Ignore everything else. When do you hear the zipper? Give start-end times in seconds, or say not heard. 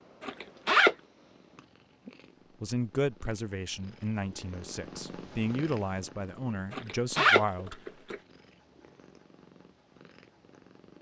0.2-0.9, 6.7-8.2.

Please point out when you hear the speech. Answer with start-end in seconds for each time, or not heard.
2.6-7.8.